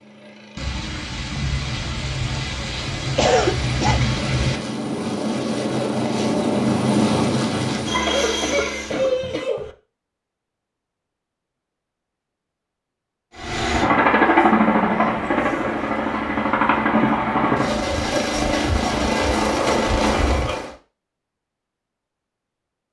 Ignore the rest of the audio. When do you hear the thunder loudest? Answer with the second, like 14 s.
4 s.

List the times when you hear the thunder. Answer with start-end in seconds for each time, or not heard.
0.6-4.6.